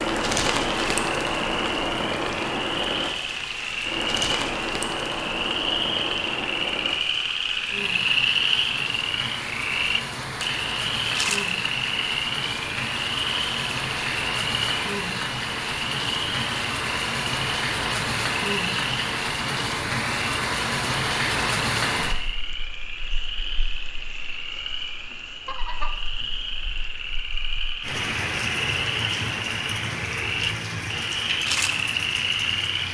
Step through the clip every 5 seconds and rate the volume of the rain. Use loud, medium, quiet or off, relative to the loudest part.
loud, medium, loud, loud, loud, medium, medium.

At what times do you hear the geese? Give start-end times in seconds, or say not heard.
25.4-26.0.